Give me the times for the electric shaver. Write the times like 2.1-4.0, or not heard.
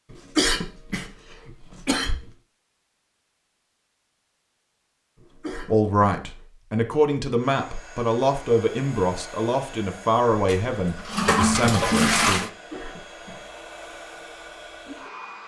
not heard.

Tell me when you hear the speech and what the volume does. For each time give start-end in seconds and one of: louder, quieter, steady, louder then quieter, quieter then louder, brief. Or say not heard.
5.7-12.4 steady.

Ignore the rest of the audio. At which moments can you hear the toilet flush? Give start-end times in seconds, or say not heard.
10.3-12.5.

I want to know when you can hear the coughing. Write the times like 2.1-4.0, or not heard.
0.1-2.3, 5.2-6.4, 12.5-13.4.